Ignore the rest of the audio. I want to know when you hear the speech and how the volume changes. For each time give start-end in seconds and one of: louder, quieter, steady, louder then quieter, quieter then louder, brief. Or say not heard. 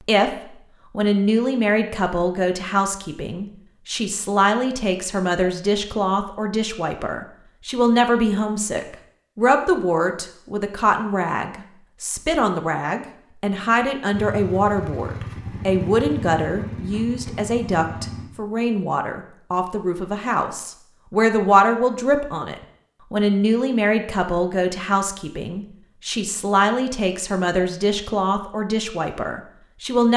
0.1-30.1 steady.